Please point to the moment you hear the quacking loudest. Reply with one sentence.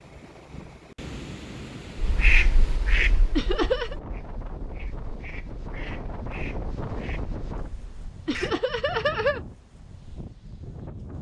The volume of the quacking peaks at 2 seconds.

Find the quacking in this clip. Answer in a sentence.
You can hear the quacking from 1.9 to 8.6 s.